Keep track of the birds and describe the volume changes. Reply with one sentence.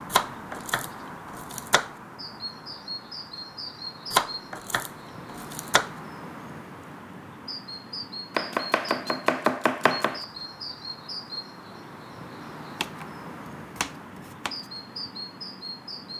The loudness of the birds stays about the same.